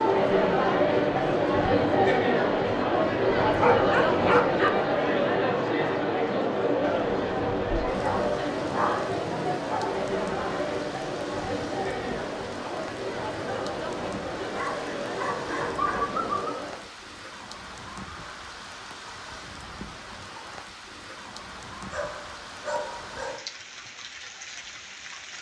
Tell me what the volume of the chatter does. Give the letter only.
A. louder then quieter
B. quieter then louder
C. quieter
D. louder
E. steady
C.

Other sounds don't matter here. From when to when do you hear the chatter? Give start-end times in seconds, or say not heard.
0.0-16.9.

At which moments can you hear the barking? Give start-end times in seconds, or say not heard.
3.5-4.7, 8.0-9.9, 14.5-16.6, 21.9-23.4.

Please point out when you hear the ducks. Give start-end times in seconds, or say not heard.
not heard.